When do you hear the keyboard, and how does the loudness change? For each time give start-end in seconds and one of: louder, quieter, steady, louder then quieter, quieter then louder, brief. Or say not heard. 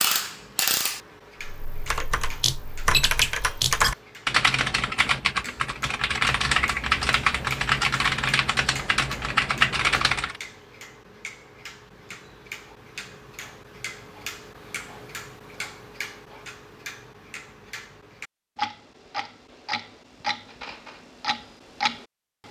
1.4-10.4 steady.